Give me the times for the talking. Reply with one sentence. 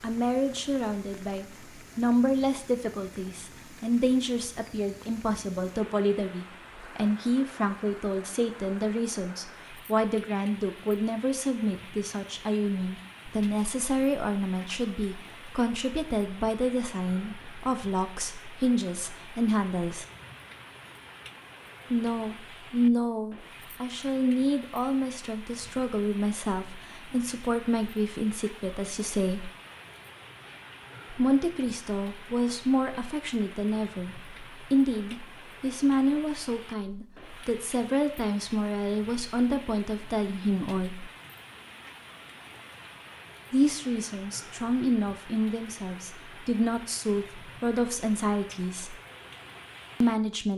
The talking can be heard from 0.0 to 20.1 s, from 21.9 to 29.5 s, from 31.1 to 41.1 s, from 43.5 to 49.0 s and from 50.0 to 50.5 s.